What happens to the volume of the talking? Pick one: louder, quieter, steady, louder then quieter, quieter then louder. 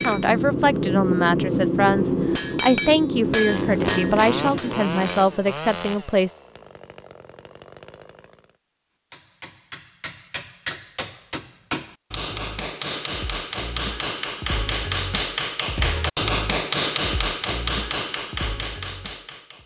steady.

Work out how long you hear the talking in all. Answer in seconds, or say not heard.
6 s.